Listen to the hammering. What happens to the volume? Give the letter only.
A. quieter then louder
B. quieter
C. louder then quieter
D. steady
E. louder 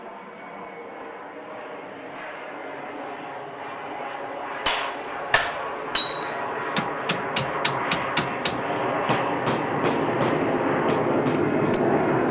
B.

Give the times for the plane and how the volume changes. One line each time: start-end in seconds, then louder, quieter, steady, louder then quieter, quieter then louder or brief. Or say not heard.
0.0-12.2 louder.